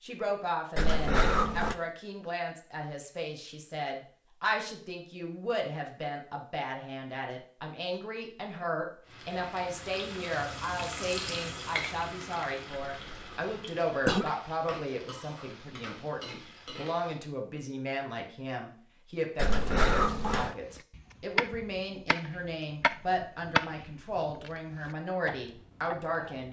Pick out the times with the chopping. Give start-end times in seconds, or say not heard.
20.7-26.4.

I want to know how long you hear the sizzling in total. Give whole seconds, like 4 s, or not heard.
8 s.